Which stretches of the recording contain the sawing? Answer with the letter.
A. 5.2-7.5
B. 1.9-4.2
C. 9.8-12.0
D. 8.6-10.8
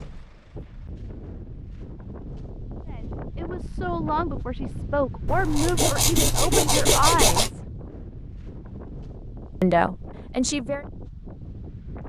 A.